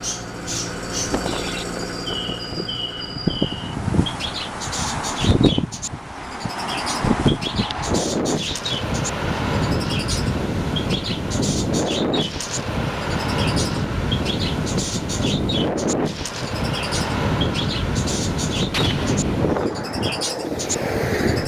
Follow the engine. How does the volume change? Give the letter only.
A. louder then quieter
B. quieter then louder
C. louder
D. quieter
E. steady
D.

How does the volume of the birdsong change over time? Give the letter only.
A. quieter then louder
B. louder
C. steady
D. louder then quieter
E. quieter
C.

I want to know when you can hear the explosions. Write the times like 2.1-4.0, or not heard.
18.7-19.6.